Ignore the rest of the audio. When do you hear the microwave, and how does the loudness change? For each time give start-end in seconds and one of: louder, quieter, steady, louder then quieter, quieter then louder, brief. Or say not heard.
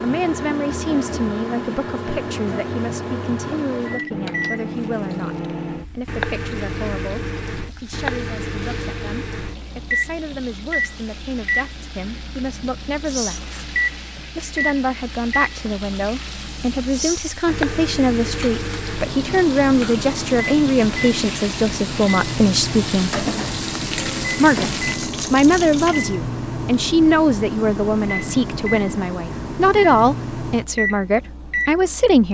0.0-32.2 steady.